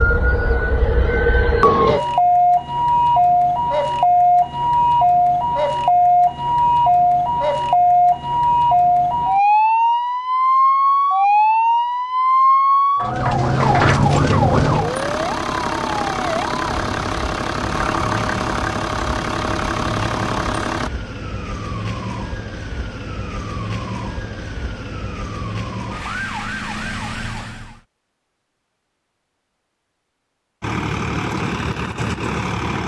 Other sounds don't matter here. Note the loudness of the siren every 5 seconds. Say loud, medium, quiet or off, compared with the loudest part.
loud, loud, loud, quiet, quiet, quiet, off.